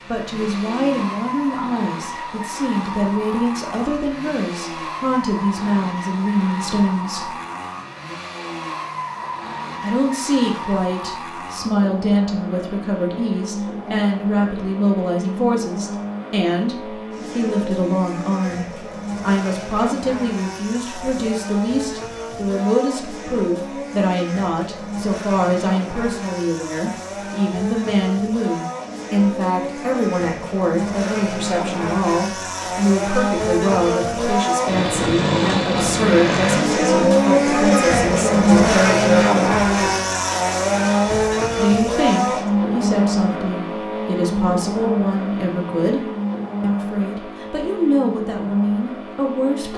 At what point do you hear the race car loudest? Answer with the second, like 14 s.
39 s.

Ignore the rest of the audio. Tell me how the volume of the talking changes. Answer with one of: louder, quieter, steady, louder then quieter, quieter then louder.
steady.